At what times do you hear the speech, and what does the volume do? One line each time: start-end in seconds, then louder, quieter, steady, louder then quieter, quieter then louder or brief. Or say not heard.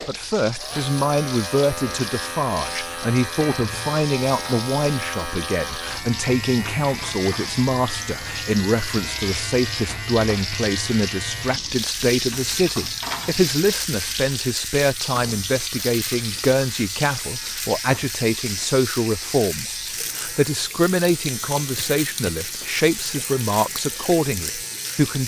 0.1-25.2 steady.